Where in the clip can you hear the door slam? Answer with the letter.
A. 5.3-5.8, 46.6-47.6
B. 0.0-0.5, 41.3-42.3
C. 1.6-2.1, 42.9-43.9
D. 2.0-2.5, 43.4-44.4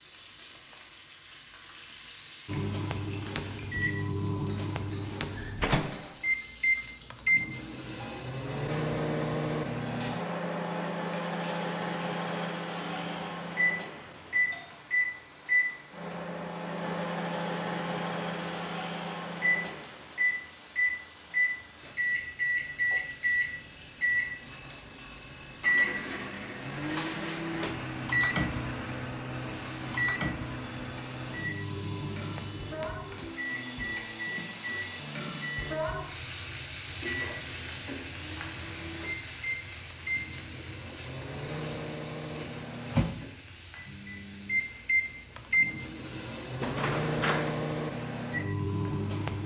A.